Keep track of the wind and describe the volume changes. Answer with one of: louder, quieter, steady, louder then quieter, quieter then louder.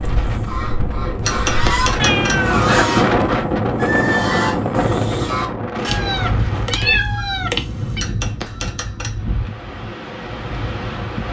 louder then quieter.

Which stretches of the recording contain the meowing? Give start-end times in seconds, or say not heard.
2.0-2.9, 5.8-8.1.